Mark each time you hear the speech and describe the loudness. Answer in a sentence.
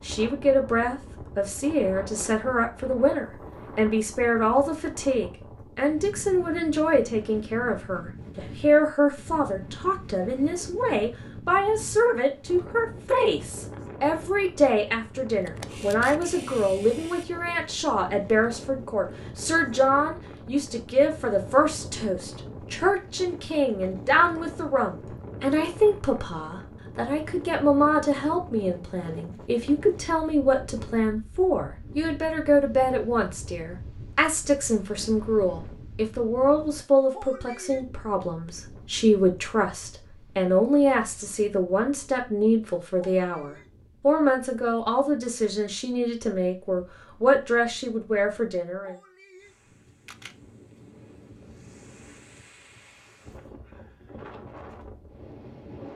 The speech can be heard from 0.1 to 49.0 s, at a steady volume.